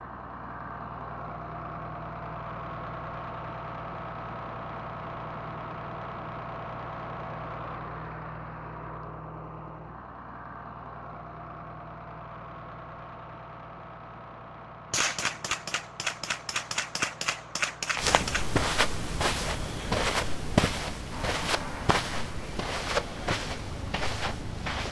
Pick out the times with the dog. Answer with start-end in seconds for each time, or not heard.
not heard.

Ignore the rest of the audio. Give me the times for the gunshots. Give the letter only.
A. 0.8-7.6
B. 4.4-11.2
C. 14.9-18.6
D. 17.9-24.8
C.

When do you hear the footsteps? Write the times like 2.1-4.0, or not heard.
17.9-24.8.